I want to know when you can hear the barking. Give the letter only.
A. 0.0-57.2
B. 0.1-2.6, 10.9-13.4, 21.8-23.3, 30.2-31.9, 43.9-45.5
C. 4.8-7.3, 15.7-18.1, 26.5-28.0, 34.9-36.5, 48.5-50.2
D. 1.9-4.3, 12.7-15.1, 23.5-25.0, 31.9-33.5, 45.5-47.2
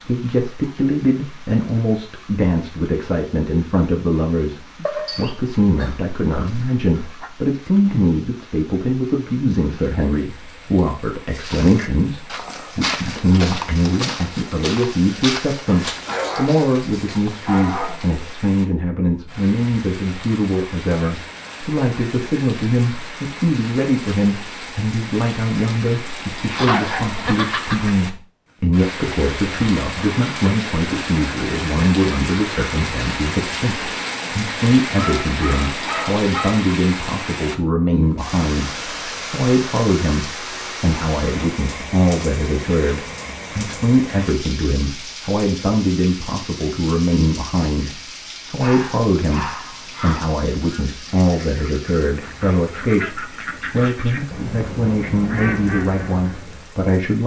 C.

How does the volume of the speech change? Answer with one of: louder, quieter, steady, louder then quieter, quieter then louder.
steady.